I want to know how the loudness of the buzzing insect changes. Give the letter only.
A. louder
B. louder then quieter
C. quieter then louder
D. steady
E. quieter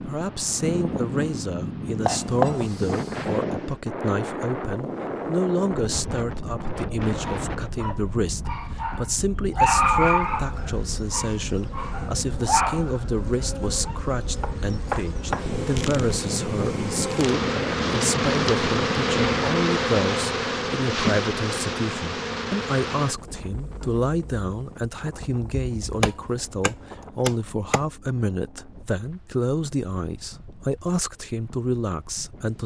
B.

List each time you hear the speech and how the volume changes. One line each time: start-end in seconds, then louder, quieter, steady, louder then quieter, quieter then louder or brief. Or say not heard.
0.0-32.6 steady.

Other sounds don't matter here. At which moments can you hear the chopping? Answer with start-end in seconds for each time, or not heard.
2.0-3.5, 14.3-15.6, 26.0-27.8.